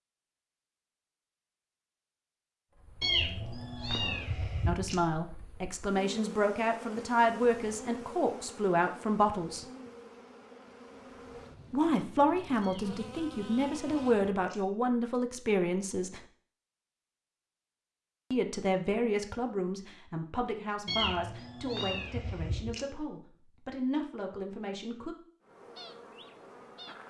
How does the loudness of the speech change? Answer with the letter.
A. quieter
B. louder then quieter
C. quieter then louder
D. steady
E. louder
A.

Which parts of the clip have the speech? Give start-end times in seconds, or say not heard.
4.7-9.7, 11.7-16.2, 18.3-25.1.